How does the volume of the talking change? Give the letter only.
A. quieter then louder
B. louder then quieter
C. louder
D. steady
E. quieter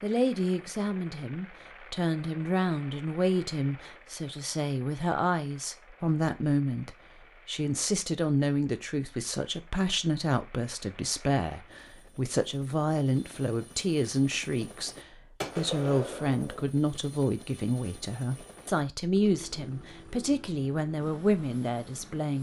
D.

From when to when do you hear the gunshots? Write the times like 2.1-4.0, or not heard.
15.4-16.6.